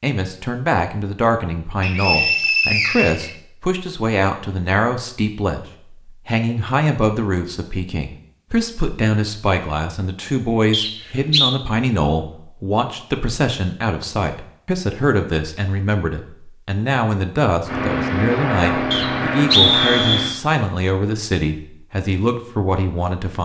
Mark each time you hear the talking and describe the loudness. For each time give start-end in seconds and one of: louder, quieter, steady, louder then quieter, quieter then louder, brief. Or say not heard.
0.0-23.4 steady.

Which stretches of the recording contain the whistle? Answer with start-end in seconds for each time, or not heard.
1.8-3.3, 10.7-11.6, 18.9-20.4.